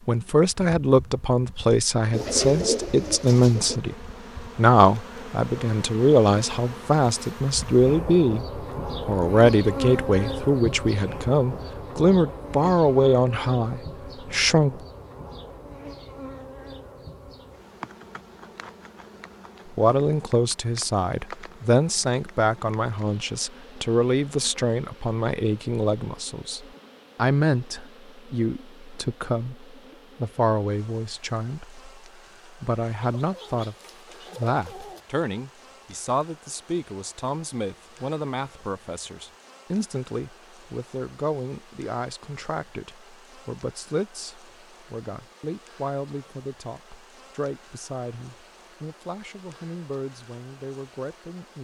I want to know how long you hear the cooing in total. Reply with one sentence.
You can hear the cooing for 4 seconds altogether.